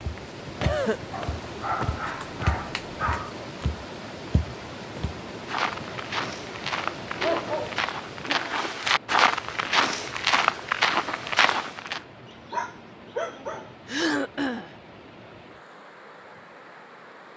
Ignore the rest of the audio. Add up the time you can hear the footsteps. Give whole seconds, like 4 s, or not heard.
12 s.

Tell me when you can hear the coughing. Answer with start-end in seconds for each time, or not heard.
0.5-1.1, 13.8-14.7.